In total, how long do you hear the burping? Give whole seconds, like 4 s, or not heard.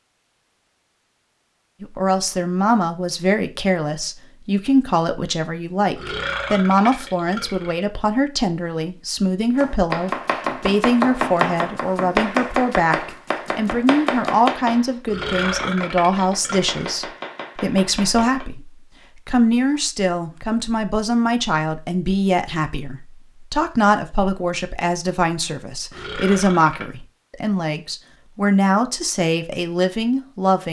5 s.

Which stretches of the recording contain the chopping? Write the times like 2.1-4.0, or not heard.
9.6-18.4.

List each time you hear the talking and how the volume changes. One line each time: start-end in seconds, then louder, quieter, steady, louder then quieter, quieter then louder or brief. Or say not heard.
1.8-30.6 steady.